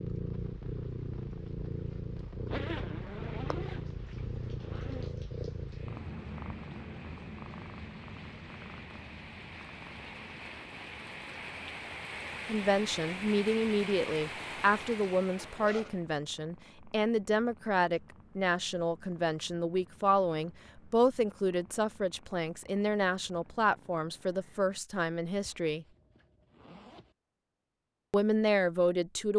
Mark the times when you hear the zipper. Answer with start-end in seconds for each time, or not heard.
2.5-5.2, 15.3-16.0, 25.4-27.1.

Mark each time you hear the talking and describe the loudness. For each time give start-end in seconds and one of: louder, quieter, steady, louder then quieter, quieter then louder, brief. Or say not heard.
12.4-25.9 steady
28.1-29.3 brief.